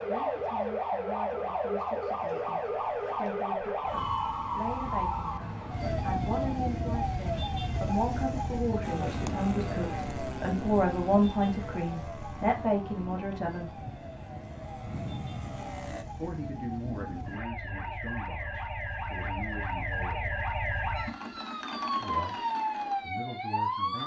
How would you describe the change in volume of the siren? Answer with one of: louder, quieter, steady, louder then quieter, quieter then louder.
quieter then louder.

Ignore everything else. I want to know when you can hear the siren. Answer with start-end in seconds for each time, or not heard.
0.0-24.0.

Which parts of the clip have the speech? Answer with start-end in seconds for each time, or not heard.
0.0-13.8, 16.1-20.4, 22.0-24.0.